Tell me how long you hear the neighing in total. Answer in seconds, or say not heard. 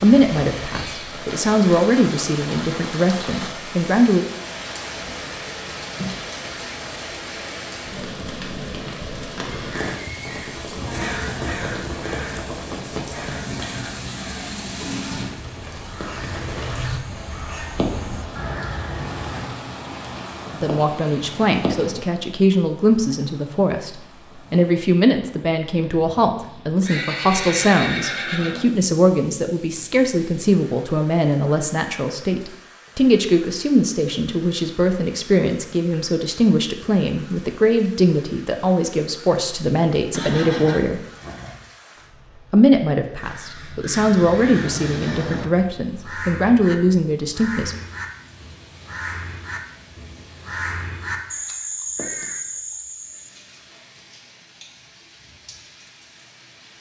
5 s.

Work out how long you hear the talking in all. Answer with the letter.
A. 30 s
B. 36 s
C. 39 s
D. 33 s
A.